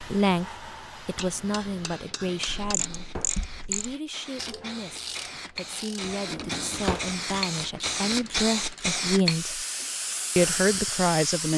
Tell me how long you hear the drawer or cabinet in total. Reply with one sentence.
You can hear the drawer or cabinet for 2 seconds altogether.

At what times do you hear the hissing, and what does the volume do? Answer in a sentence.
You can hear the hissing from 0.0 to 11.5 s, getting louder.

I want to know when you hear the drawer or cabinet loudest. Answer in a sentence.
The volume of the drawer or cabinet peaks at 7 seconds.